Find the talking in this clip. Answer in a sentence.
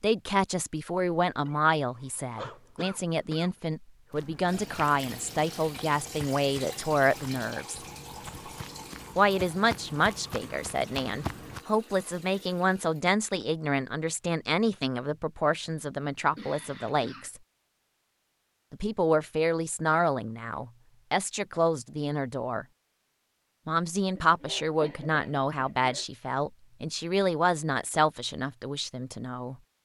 The talking can be heard from 0.0 to 7.8 s, from 9.2 to 17.4 s, from 18.7 to 22.6 s and from 23.6 to 29.6 s.